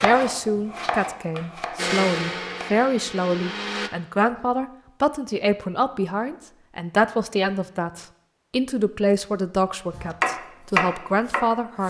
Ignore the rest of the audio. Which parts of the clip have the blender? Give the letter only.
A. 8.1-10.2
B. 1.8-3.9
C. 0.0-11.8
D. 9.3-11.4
B.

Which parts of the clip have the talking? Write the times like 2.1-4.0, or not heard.
0.0-11.8.